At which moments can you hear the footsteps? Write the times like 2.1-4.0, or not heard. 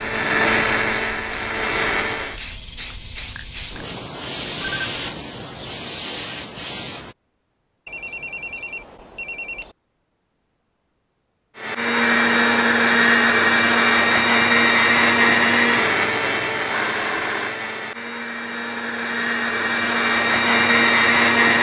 not heard.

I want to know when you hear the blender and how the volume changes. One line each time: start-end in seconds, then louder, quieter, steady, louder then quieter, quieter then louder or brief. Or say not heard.
0.0-2.4 brief
11.6-21.5 quieter then louder.